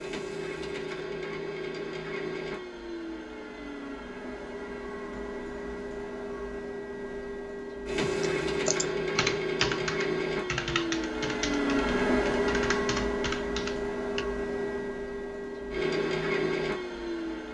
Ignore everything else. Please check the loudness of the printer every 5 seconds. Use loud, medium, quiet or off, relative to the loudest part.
medium, loud, loud, loud.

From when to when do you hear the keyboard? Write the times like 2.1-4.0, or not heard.
8.0-14.2.